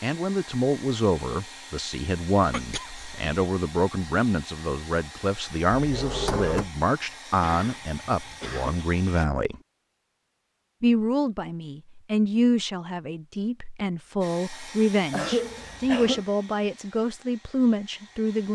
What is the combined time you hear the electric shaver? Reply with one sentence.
The electric shaver can't be heard in this clip.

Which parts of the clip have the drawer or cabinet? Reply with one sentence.
The drawer or cabinet can be heard from 5.8 to 6.7 s.